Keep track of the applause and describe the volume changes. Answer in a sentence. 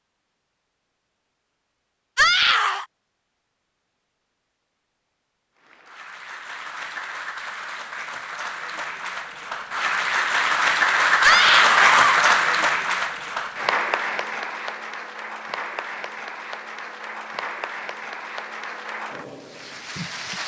The volume of the applause goes up, then down.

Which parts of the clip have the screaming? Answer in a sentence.
The screaming can be heard from 2.1 to 2.9 s and from 11.2 to 12.2 s.